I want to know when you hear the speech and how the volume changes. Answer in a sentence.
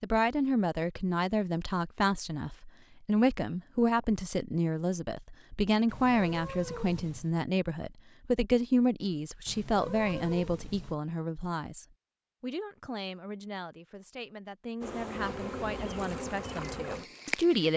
You can hear the speech from 0.0 to 17.7 s, getting quieter.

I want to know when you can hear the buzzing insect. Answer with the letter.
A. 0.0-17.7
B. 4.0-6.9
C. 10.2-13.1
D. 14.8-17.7
D.